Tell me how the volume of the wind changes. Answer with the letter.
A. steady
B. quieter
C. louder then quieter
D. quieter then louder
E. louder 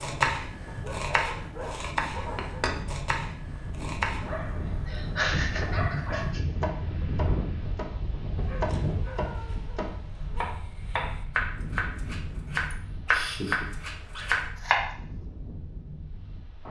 C.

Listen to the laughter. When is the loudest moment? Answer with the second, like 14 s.
5 s.